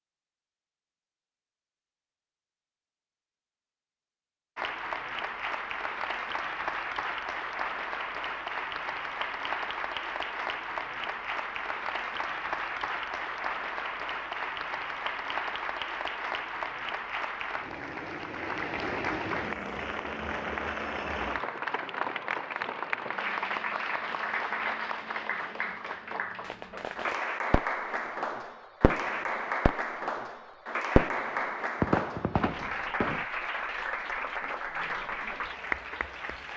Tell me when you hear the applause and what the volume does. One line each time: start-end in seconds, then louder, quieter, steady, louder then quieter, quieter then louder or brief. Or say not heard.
4.5-36.5 steady.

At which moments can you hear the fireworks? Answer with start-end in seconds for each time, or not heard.
26.4-27.7, 28.8-30.2, 30.9-33.2.